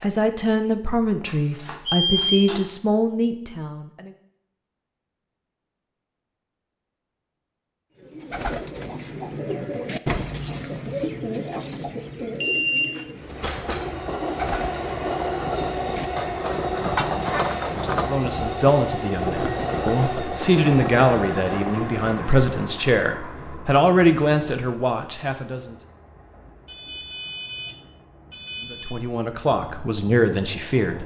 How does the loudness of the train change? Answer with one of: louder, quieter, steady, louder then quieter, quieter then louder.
quieter.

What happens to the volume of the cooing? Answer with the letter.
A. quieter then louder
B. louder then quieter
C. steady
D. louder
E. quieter
A.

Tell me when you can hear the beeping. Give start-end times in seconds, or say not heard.
1.2-2.6, 12.4-13.9, 26.6-29.0.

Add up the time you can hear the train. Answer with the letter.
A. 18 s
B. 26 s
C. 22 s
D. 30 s
A.